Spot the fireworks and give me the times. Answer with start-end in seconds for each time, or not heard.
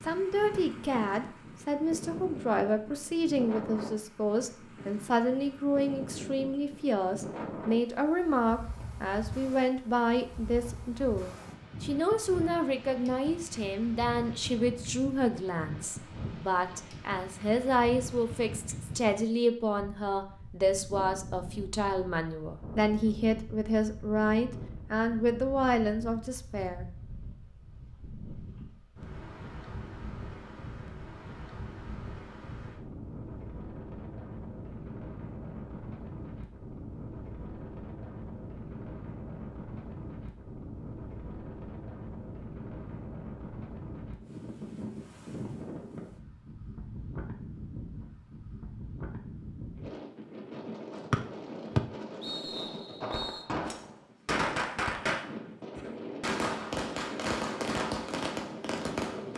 53.0-59.3.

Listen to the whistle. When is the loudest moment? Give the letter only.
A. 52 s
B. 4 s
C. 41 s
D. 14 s
A.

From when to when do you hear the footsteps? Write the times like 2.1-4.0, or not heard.
not heard.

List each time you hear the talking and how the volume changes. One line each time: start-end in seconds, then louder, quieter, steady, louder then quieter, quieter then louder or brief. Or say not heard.
0.0-26.9 steady.